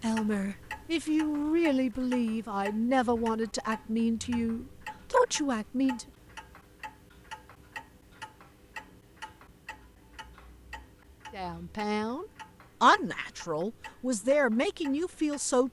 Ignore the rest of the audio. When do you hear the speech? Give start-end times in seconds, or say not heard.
0.0-6.0, 11.3-15.6.